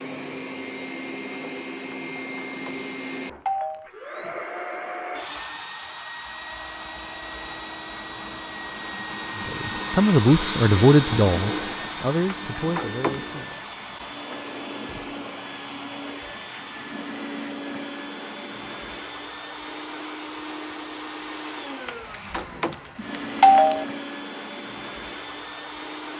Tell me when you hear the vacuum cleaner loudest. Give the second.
11 s.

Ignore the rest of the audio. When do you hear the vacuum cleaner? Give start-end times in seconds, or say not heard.
0.0-26.1.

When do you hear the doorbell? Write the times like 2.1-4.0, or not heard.
1.9-3.9, 12.2-13.3, 21.9-23.9.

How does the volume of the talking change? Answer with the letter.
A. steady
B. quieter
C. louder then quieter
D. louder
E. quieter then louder
B.